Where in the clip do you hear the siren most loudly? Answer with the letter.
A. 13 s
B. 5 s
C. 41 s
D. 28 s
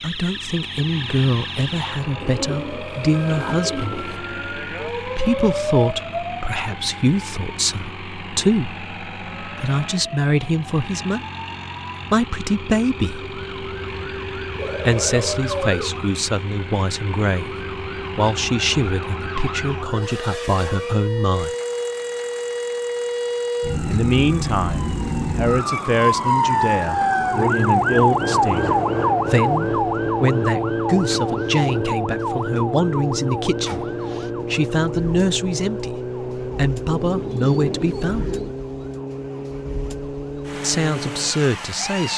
D.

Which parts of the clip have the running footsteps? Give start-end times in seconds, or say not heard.
not heard.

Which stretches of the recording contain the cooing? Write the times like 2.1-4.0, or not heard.
2.2-4.2, 14.6-15.8, 36.9-38.5.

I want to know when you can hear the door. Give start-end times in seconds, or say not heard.
not heard.